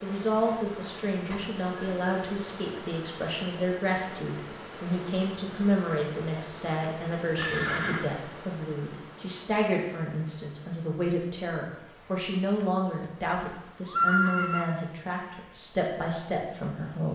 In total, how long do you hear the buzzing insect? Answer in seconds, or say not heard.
not heard.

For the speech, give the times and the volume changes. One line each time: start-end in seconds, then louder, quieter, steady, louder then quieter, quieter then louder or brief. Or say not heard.
0.0-17.1 steady.